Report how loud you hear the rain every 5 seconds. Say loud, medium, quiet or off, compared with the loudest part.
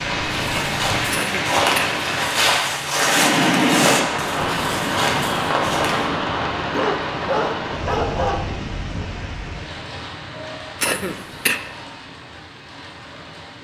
loud, loud, quiet.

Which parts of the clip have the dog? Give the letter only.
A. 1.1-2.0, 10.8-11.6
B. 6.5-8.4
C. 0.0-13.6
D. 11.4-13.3
B.